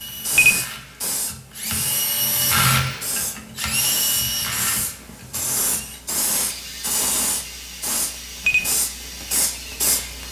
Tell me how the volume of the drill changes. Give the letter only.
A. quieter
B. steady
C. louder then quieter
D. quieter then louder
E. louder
C.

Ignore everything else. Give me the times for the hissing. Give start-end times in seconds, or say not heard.
0.0-10.2.